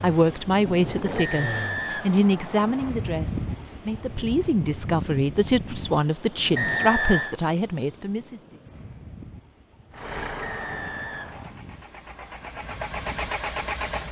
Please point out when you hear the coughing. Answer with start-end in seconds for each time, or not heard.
not heard.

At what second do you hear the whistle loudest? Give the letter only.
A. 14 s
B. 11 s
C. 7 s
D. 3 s
C.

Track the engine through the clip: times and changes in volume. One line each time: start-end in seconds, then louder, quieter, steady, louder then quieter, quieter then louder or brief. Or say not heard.
0.0-1.9 brief
9.9-14.0 quieter then louder.